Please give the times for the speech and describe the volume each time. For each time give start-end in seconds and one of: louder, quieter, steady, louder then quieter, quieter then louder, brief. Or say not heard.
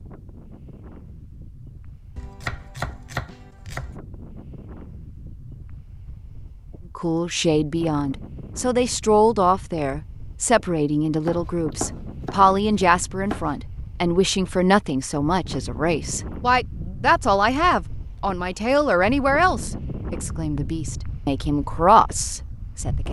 7.0-23.0 steady.